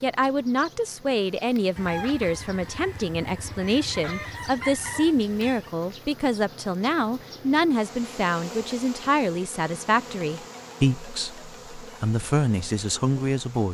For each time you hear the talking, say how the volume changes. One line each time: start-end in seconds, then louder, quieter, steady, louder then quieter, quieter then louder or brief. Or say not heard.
0.0-13.6 steady.